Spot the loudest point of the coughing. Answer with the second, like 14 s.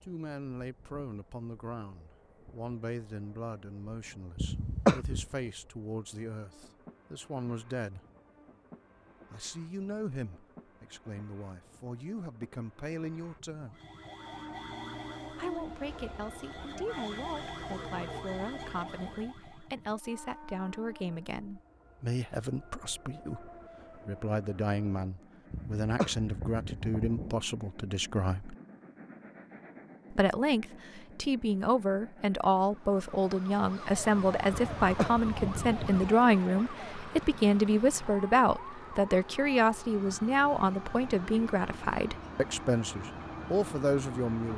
5 s.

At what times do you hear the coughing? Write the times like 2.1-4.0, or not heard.
4.3-5.2, 25.5-27.4, 34.5-36.1.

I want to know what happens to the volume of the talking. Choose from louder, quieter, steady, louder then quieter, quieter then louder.
louder.